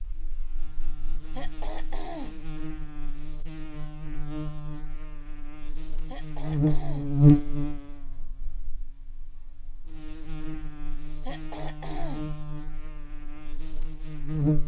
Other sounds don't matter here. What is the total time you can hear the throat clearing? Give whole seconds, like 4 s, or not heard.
3 s.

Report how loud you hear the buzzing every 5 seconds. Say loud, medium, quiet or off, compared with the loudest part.
quiet, loud, medium.